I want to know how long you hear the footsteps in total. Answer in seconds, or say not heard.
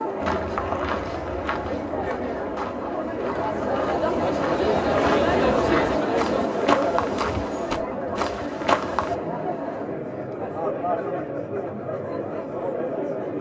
9 s.